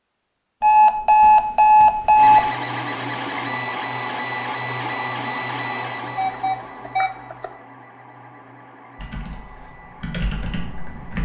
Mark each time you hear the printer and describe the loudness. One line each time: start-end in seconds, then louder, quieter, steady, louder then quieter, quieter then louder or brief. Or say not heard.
2.1-11.1 quieter.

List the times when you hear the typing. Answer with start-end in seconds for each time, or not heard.
8.9-11.1.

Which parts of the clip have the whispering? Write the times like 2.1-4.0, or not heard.
not heard.